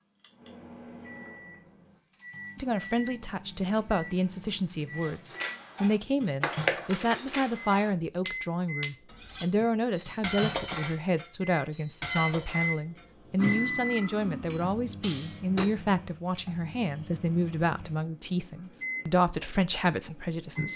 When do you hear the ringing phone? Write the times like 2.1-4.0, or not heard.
not heard.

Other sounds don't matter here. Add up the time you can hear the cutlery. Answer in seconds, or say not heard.
10 s.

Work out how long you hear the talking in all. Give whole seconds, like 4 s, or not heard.
18 s.